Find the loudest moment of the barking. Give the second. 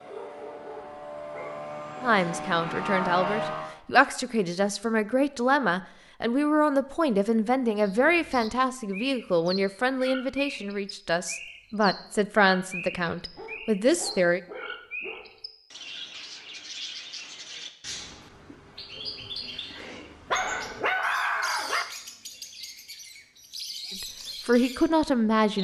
21 s.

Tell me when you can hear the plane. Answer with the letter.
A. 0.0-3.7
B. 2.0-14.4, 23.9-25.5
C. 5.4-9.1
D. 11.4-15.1
A.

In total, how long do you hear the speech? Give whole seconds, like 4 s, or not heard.
14 s.